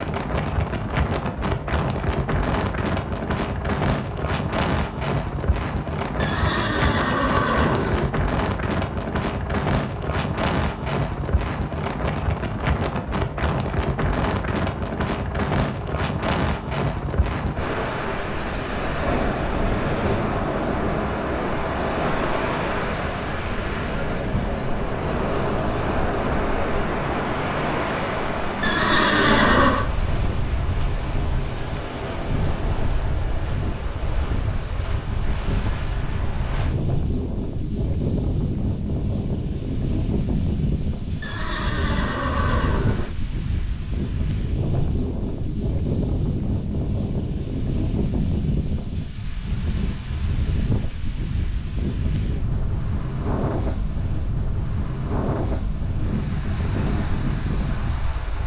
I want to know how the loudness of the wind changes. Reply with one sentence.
The loudness of the wind stays about the same.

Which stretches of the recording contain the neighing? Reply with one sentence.
The neighing can be heard from 6.2 to 8.2 s, from 28.6 to 29.9 s and from 41.2 to 43.1 s.